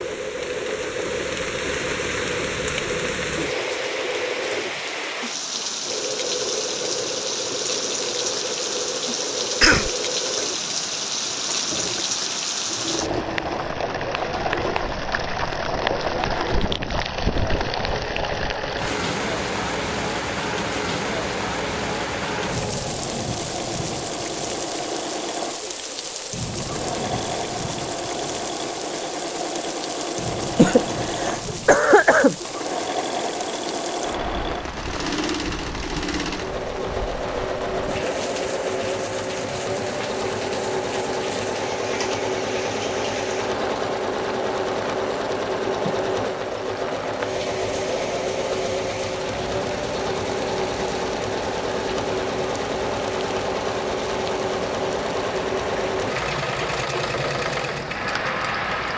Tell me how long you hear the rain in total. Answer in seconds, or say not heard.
59 s.